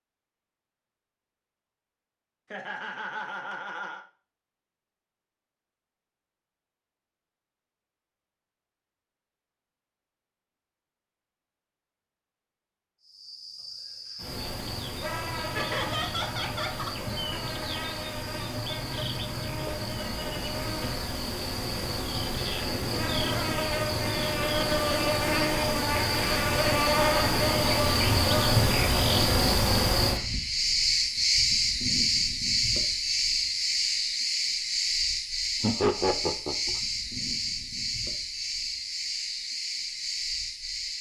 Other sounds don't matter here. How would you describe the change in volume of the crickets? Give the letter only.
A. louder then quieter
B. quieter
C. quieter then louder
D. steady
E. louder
A.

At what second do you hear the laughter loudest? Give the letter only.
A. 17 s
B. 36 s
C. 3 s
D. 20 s
B.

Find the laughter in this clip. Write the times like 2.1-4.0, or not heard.
2.5-4.0, 15.5-17.1, 35.6-36.8.